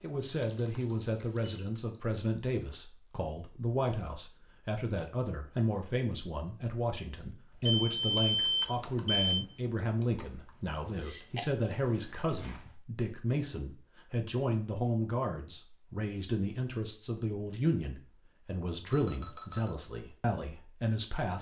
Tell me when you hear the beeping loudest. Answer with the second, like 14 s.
8 s.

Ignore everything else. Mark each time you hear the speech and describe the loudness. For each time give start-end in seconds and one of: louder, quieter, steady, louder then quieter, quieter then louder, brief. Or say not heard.
0.0-21.3 steady.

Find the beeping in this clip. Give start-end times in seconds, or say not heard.
0.3-1.6, 7.7-9.5, 18.9-19.8.